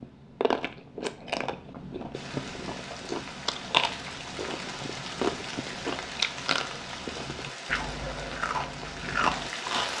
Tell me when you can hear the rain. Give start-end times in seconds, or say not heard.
2.1-9.9.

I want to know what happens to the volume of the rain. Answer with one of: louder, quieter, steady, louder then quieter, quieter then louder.
steady.